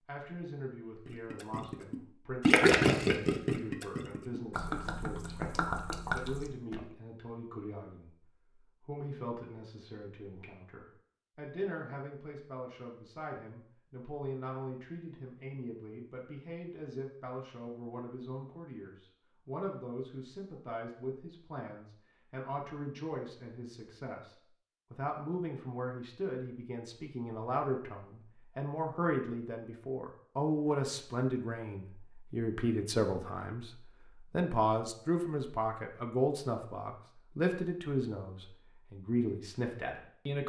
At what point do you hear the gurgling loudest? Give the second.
3 s.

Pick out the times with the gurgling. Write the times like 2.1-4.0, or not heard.
1.1-6.8.